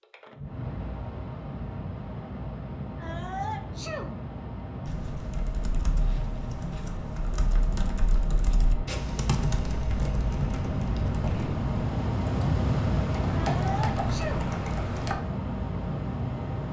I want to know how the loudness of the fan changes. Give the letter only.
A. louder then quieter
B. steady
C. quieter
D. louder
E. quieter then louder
D.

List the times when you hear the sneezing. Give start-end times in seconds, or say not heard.
3.0-4.2, 13.3-14.5.